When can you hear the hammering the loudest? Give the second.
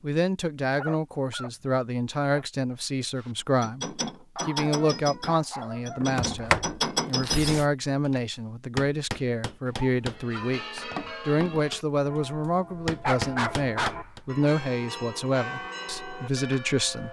7 s.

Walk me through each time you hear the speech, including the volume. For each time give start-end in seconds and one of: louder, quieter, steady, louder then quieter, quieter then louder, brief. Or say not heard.
0.0-17.0 steady.